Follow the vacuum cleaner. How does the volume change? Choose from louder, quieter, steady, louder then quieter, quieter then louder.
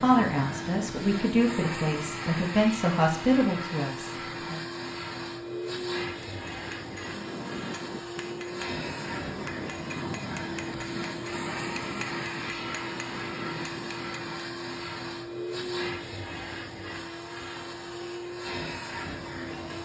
steady.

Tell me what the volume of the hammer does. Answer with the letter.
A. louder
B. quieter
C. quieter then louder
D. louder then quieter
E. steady
E.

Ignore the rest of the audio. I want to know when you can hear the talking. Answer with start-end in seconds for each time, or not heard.
0.0-4.6.